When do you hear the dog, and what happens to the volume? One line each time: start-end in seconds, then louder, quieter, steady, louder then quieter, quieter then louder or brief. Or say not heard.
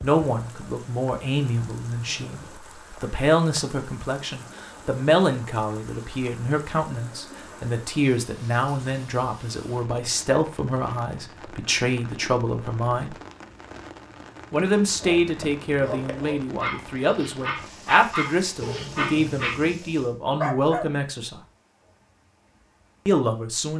14.8-20.9 louder.